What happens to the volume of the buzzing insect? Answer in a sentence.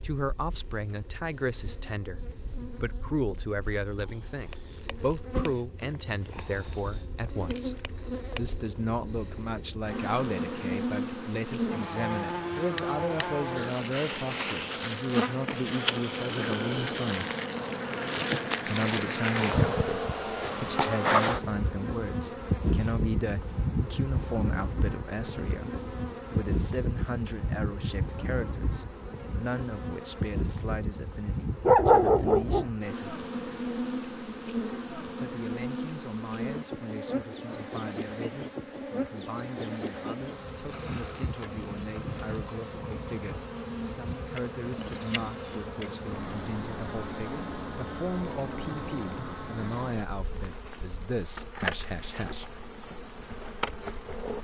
The volume of the buzzing insect goes up, then down.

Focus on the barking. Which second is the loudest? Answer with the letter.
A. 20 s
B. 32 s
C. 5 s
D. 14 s
B.